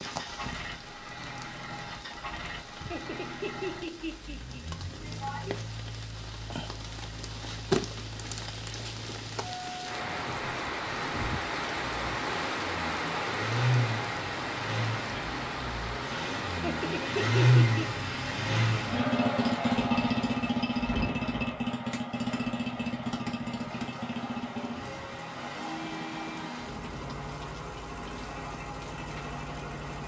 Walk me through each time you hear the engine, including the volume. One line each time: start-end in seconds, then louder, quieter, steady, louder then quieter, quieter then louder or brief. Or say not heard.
0.0-30.0 louder then quieter.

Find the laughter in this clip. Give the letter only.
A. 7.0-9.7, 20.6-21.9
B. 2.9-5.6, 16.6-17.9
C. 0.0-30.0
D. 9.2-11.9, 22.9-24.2
B.